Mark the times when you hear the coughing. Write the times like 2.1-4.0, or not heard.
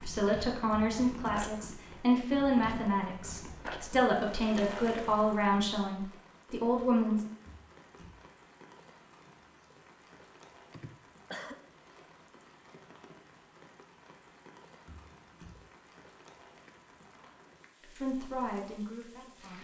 10.7-11.6.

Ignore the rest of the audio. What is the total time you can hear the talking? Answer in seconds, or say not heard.
9 s.